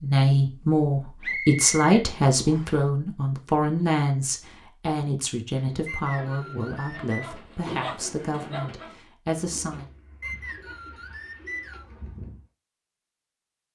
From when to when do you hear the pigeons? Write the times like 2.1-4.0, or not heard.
5.5-12.4.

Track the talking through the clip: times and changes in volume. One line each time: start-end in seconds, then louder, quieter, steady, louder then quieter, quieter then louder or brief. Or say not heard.
0.0-9.8 quieter.